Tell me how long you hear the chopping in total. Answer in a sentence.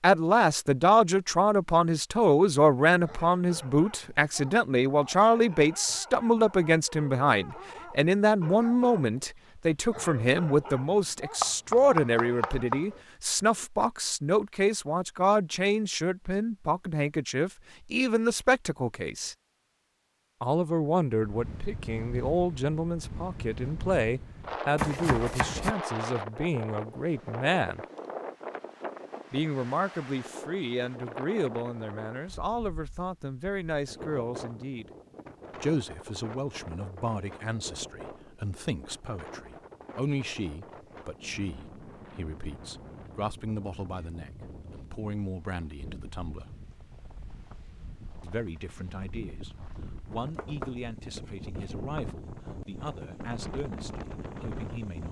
The chopping can be heard for 5 seconds in total.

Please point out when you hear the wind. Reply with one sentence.
You can hear the wind from 21.2 to 55.0 s.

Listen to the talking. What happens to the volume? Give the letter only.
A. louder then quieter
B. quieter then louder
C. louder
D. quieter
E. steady
D.